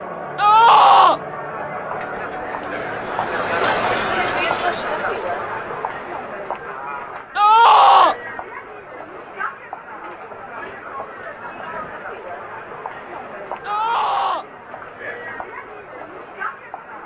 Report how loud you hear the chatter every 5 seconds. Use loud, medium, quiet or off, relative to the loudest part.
loud, medium, medium, medium.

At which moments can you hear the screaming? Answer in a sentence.
The screaming can be heard from 0.3 to 1.2 s, from 7.3 to 8.2 s and from 13.7 to 14.4 s.